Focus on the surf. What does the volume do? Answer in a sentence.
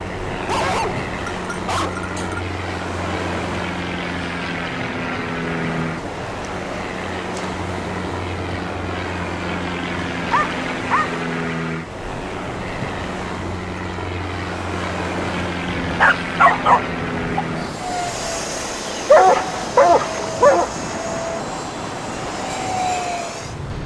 The loudness of the surf stays about the same.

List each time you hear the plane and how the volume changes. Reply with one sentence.
The plane can be heard from 0.0 to 23.8 s, at a steady volume.